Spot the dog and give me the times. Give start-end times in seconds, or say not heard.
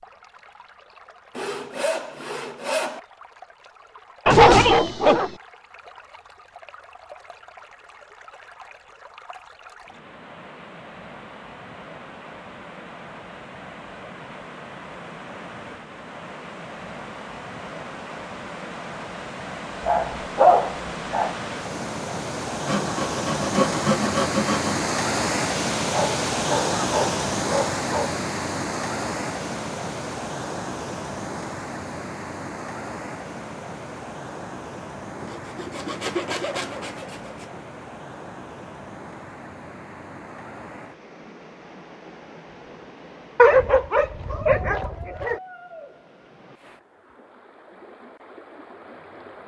4.2-5.3, 19.9-21.4, 25.8-28.1, 43.4-45.4.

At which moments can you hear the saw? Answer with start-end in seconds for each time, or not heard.
1.4-3.0, 22.6-24.9, 35.2-37.6.